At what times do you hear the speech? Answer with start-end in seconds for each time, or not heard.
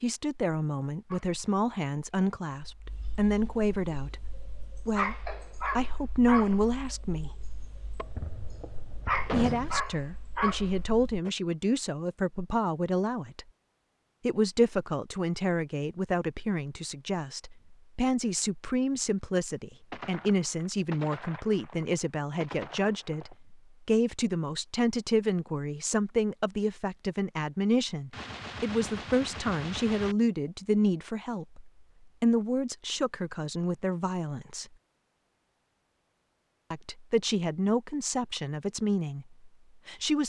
0.0-4.2, 4.8-7.4, 9.3-13.4, 14.2-34.6, 36.7-40.2.